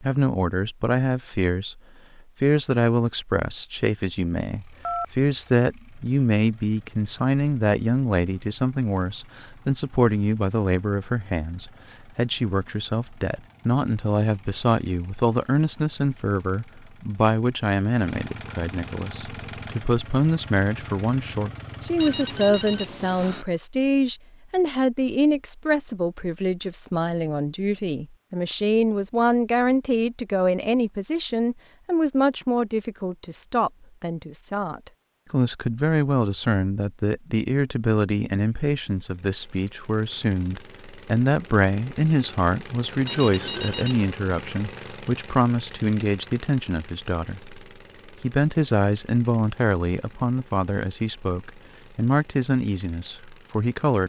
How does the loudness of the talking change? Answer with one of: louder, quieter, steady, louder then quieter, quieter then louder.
steady.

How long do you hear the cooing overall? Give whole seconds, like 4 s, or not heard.
not heard.